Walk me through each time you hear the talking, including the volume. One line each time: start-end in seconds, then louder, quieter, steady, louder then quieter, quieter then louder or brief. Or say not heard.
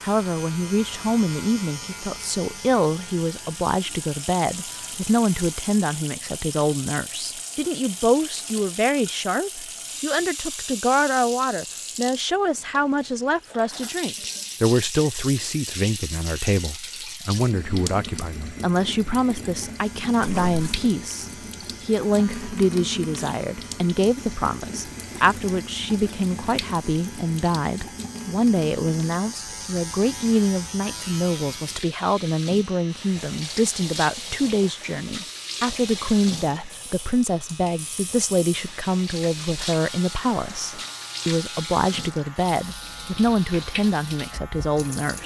0.0-45.2 steady.